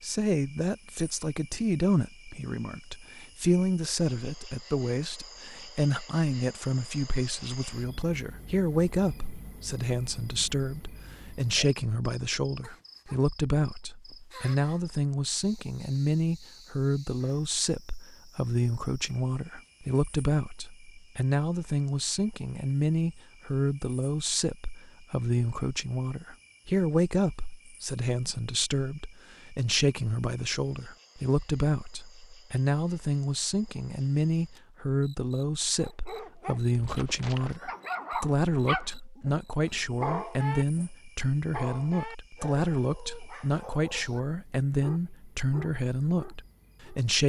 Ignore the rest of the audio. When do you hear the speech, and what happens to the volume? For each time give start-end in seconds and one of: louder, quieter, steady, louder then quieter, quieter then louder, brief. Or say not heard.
0.0-47.2 steady.